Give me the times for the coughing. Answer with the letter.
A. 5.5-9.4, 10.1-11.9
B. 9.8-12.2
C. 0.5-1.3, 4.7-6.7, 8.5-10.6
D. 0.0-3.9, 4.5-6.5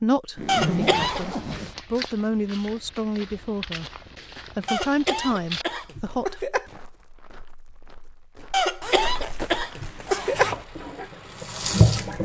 C.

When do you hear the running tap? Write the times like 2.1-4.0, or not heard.
9.8-12.2.